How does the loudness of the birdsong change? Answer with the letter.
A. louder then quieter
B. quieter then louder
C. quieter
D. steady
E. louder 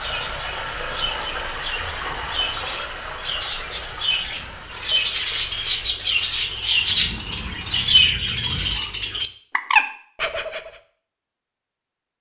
E.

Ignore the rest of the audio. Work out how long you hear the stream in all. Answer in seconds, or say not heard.
8 s.